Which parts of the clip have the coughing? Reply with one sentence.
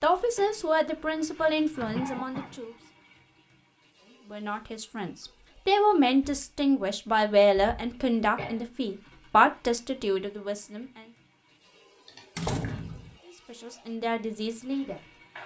The coughing can be heard from 1.9 to 2.6 s, from 7.5 to 8.7 s and from 12.1 to 12.8 s.